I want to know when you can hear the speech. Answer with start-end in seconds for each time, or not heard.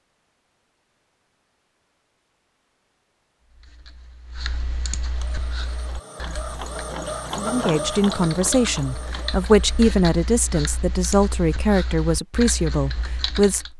7.3-13.7.